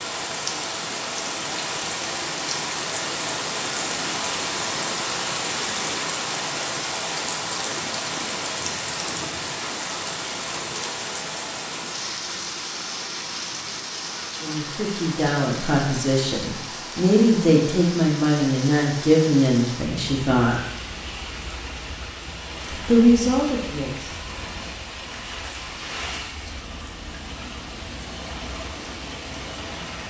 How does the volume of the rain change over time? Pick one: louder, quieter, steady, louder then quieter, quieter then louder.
quieter.